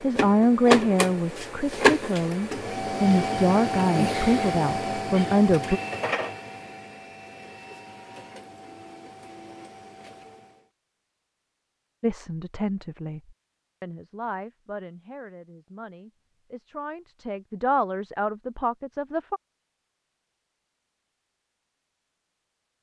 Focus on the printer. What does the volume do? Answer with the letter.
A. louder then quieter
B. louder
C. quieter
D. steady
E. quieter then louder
C.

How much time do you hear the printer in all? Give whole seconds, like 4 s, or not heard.
11 s.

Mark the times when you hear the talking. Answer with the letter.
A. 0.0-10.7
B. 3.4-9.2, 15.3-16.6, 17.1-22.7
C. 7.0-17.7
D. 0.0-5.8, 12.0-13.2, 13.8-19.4
D.